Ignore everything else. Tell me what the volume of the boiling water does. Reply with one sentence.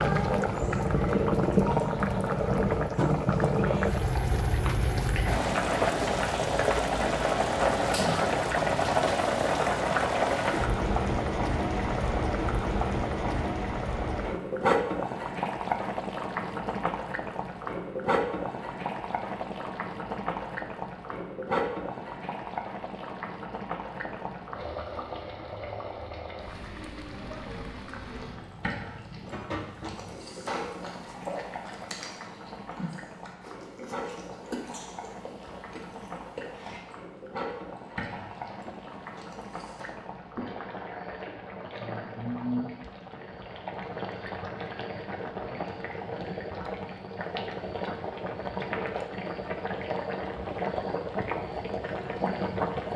The volume of the boiling water goes down, then up.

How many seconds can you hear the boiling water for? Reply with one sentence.
The boiling water can be heard for 53 seconds in total.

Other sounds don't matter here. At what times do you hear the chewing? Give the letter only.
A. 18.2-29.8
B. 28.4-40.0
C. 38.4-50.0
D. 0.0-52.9
B.